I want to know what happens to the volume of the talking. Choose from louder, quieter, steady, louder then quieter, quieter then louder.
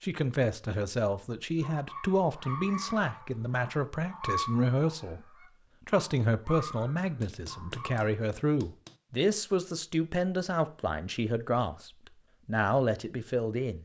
steady.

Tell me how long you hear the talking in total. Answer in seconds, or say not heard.
14 s.